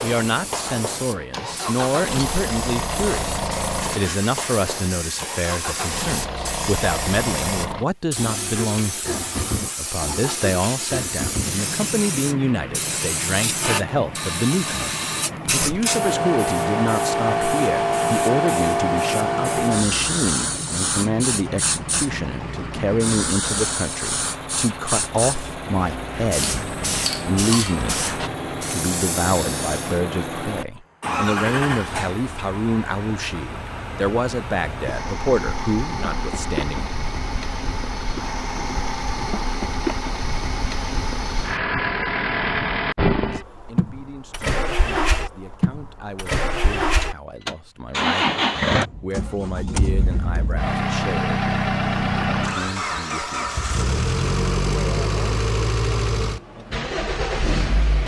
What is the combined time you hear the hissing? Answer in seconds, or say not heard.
30 s.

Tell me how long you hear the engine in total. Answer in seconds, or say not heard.
58 s.